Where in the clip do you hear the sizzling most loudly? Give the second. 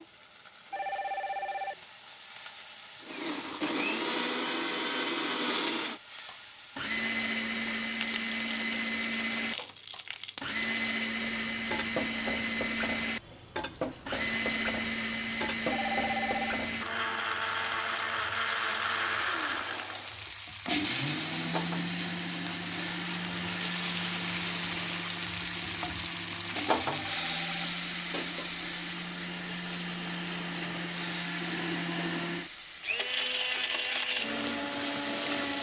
27 s.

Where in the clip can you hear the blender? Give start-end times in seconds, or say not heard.
3.0-35.5.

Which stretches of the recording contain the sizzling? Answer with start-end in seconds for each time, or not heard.
0.0-35.5.